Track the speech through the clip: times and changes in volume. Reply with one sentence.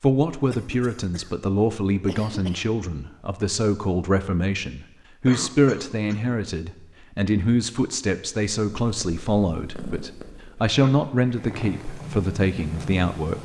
You can hear the speech from 0.0 to 13.4 s, at a steady volume.